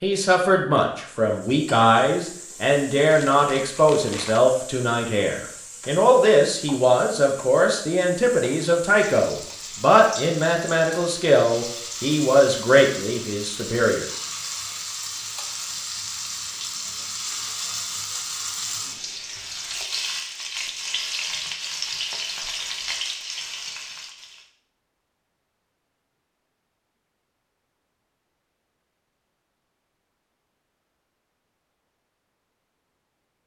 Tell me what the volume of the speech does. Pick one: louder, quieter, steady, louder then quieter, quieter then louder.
steady.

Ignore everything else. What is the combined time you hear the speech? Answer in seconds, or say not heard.
14 s.